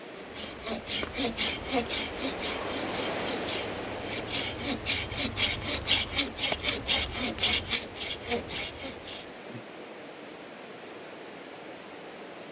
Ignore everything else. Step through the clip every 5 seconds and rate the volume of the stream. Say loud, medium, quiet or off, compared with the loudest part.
loud, medium, medium.